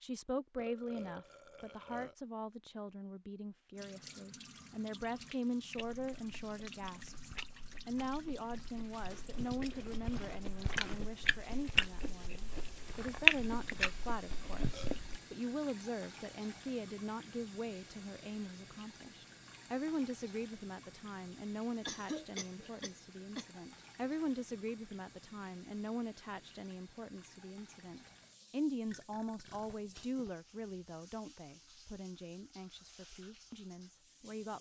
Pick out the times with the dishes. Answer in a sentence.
You can't hear the dishes here.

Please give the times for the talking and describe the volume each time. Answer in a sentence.
You can hear the talking from 0.0 to 34.5 s, at a steady volume.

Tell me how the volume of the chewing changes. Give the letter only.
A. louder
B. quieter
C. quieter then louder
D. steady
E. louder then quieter
A.